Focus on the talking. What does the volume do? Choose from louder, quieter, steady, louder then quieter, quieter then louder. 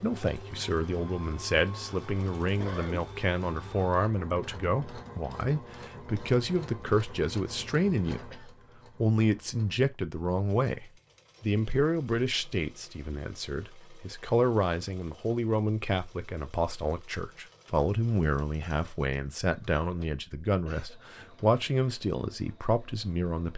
steady.